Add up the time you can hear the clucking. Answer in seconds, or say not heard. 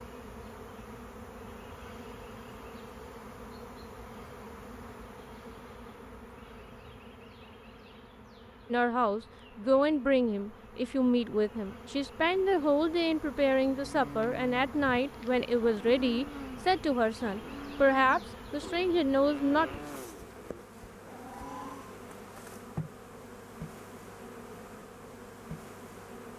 not heard.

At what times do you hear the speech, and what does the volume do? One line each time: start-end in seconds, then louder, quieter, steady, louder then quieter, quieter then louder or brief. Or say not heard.
8.7-19.8 steady.